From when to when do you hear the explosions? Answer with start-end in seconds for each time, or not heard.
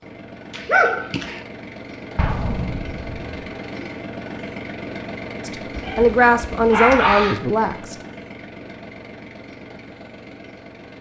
2.1-3.5.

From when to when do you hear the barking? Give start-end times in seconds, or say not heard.
0.5-1.4, 5.8-7.4.